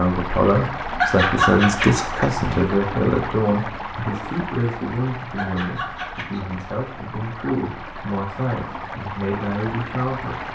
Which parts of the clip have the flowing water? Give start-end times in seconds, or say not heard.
0.0-10.4.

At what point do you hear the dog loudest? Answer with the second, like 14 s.
1 s.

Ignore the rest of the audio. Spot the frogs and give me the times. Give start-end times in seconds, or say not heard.
not heard.